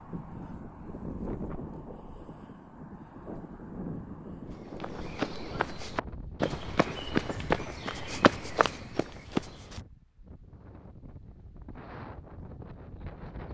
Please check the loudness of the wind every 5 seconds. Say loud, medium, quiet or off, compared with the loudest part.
loud, medium, medium.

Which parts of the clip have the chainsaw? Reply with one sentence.
The chainsaw can't be heard in this clip.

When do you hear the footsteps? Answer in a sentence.
The footsteps can be heard from 4.5 to 9.8 s.